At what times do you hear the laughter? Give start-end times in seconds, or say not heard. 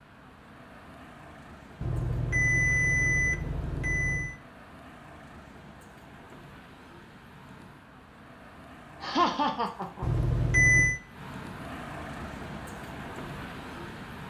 9.0-10.1.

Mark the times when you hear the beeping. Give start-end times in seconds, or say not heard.
1.8-4.3, 10.0-11.0.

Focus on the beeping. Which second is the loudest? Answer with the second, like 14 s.
11 s.